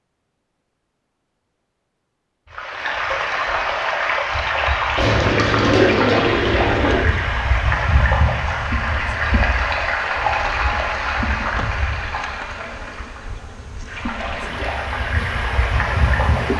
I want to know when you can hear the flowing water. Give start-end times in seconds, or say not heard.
2.5-16.5.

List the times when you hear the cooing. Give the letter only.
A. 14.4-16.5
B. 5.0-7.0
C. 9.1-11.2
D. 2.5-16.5
B.